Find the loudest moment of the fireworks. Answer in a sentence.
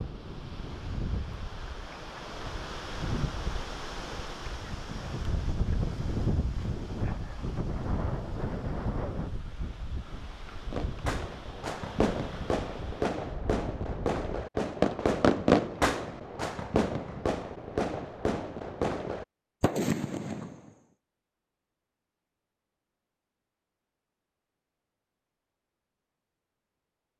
The volume of the fireworks peaks at 15 seconds.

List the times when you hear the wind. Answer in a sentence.
The wind can be heard from 0.0 to 14.2 s.